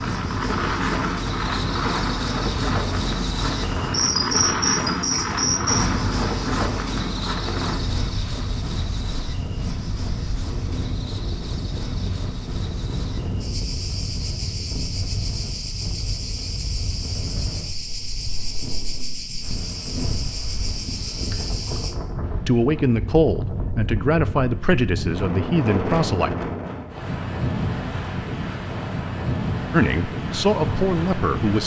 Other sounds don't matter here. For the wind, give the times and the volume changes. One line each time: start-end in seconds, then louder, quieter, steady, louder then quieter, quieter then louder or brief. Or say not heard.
0.0-31.6 quieter then louder.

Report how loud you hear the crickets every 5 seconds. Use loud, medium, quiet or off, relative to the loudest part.
loud, loud, medium, medium, medium, off, off.